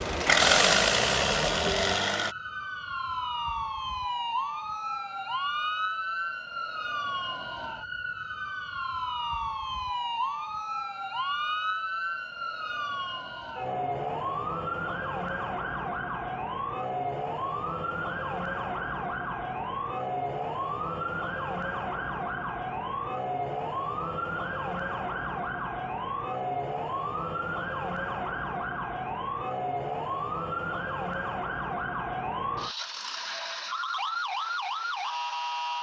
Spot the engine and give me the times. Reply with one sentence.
The engine can be heard from 0.0 to 2.4 s.